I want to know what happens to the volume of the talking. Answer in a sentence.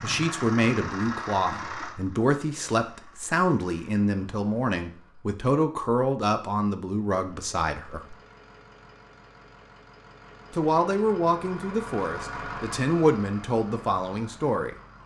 The loudness of the talking stays about the same.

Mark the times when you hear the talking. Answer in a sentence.
You can hear the talking from 0.0 to 8.2 s and from 10.5 to 14.8 s.